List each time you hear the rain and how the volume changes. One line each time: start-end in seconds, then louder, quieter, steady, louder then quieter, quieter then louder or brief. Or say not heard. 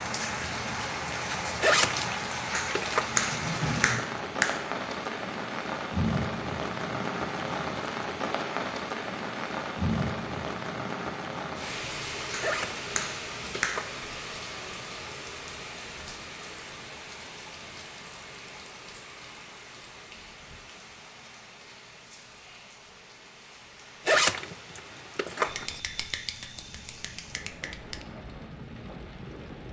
0.0-29.6 quieter.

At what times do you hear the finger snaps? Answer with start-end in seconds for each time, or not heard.
2.5-4.7, 12.3-13.9, 25.4-28.1.